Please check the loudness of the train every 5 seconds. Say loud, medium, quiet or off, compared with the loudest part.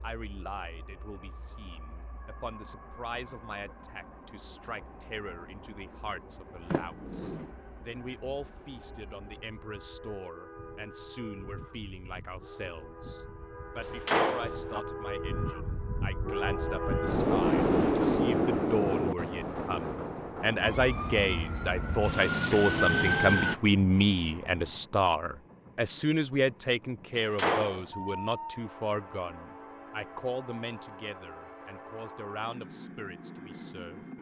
quiet, quiet, quiet, loud, quiet, quiet, quiet.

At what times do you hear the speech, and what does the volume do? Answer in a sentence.
You can hear the speech from 0.0 to 34.0 s, getting louder then quieter.